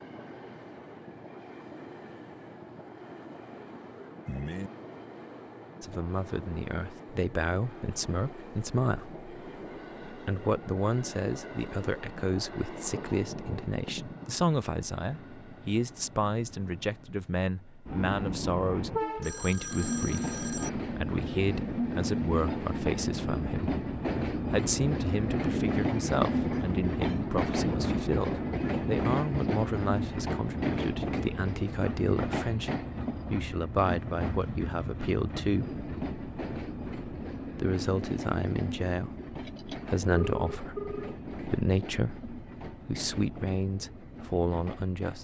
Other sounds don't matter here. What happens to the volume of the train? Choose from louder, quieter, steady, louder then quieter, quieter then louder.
louder then quieter.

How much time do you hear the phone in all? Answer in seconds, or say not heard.
4 s.